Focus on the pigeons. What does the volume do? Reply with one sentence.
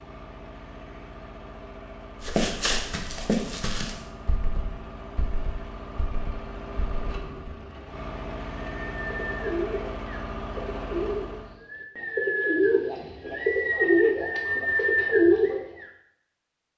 The loudness of the pigeons goes up.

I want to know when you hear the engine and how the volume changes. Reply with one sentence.
The engine can be heard from 0.0 to 11.6 s, getting louder.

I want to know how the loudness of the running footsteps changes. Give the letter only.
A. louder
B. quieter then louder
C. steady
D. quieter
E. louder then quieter
D.